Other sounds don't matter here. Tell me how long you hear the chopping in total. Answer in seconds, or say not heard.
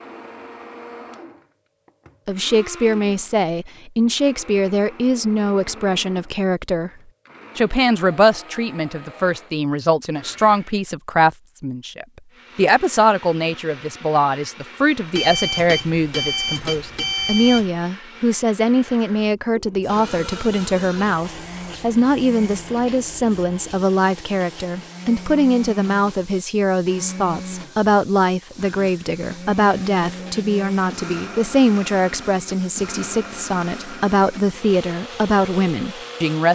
not heard.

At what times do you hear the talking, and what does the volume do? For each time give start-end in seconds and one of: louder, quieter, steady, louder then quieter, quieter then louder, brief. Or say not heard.
2.2-6.9 steady
7.5-36.5 steady.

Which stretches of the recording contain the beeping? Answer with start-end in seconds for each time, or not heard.
15.2-17.7.